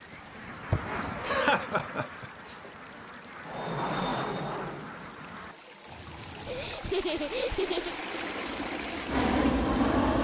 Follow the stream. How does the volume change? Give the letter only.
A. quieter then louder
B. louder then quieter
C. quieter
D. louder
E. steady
D.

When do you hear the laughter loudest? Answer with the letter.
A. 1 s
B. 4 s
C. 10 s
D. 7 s
A.